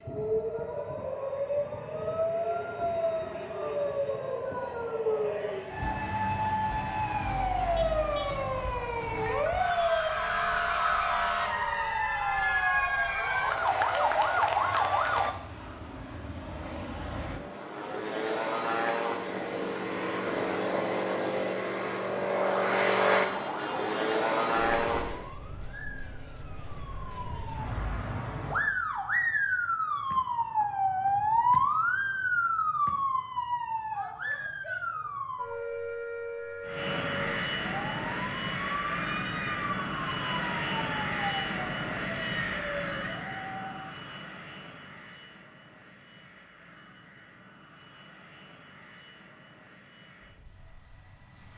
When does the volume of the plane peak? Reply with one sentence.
The volume of the plane peaks at 23 seconds.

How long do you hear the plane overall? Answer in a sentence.
You can hear the plane for 40 seconds altogether.